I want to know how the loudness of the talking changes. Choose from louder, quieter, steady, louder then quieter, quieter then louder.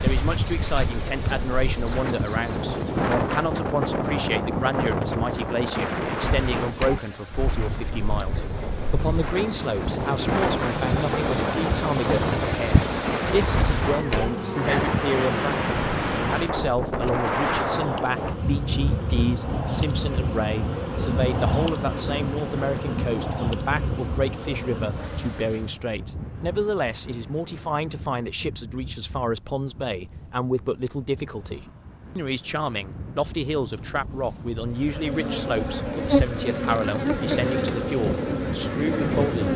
steady.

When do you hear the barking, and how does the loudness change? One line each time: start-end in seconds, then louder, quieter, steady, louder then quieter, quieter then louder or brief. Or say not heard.
not heard.